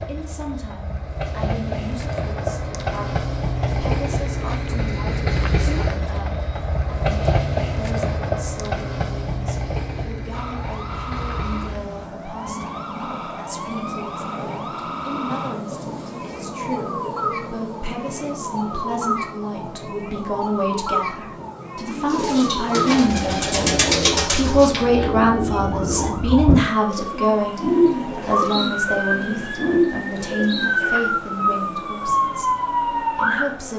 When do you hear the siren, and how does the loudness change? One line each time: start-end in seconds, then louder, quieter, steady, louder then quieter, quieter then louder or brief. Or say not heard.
10.3-33.6 louder.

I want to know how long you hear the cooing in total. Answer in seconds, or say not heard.
9 s.